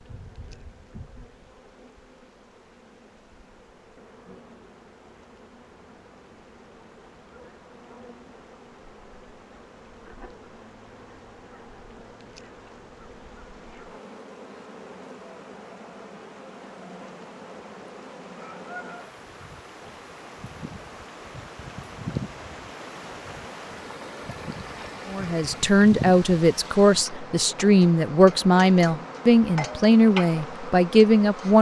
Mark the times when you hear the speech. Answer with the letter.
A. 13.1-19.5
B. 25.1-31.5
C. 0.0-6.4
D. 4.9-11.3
B.